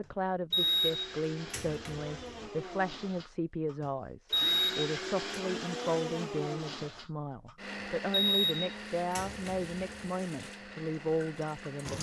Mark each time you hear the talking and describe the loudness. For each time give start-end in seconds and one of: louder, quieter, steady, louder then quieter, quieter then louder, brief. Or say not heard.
0.0-11.9 steady.